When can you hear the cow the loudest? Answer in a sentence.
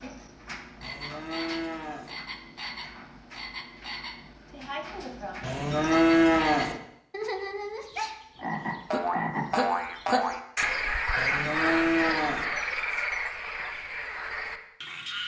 The loudest moment of the cow is at 6 seconds.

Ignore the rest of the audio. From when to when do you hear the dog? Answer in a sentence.
You can't hear the dog here.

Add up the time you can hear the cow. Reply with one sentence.
You can hear the cow for 4 seconds altogether.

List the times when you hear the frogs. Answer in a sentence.
You can hear the frogs from 0.0 to 15.2 s.